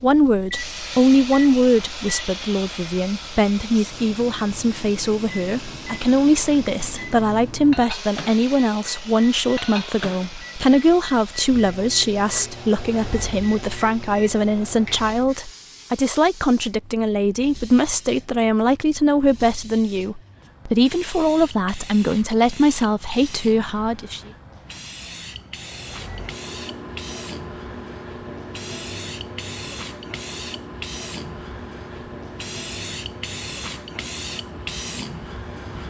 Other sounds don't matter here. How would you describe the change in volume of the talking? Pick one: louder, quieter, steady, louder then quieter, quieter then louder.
steady.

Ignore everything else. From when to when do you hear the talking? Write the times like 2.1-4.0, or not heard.
0.0-24.2.